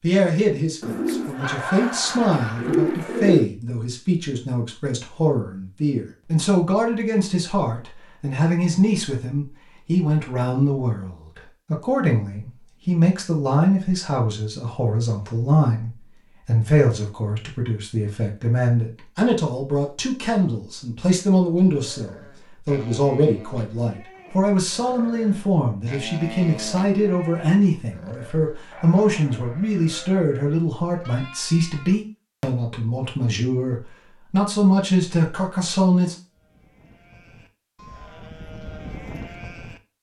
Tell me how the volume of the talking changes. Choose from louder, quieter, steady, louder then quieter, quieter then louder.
steady.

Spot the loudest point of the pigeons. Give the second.
3 s.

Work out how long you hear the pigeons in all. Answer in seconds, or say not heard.
3 s.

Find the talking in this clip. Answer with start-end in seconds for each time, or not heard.
0.0-36.1.